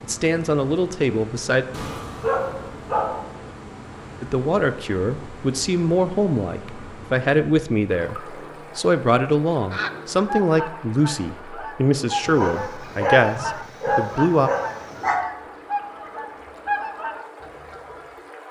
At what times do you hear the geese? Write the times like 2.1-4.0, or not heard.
8.0-18.1.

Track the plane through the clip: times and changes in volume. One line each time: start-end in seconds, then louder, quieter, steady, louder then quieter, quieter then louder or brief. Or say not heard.
not heard.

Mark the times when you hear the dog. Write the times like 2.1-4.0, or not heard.
1.7-3.2, 12.2-15.2.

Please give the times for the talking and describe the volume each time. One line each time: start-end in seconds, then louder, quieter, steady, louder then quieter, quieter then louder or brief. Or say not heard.
0.0-1.6 brief
4.2-14.5 steady.